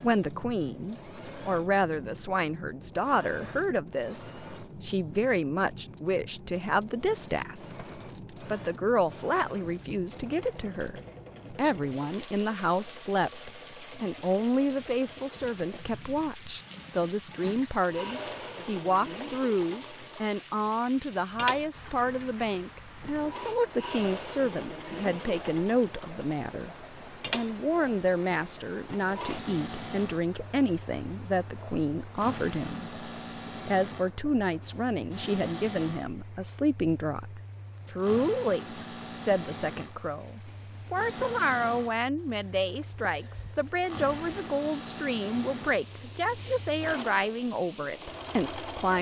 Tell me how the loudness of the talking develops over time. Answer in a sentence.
The loudness of the talking stays about the same.